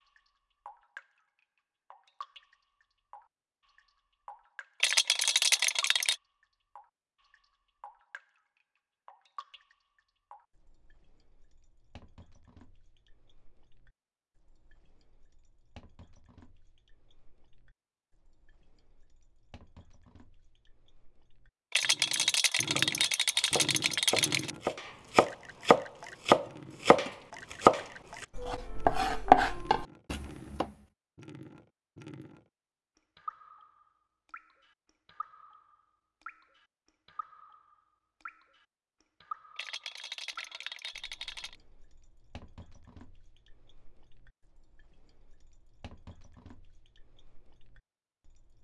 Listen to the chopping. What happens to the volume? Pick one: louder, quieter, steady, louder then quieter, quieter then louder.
louder.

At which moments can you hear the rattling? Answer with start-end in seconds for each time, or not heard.
4.8-6.2, 21.7-24.5, 39.5-41.5.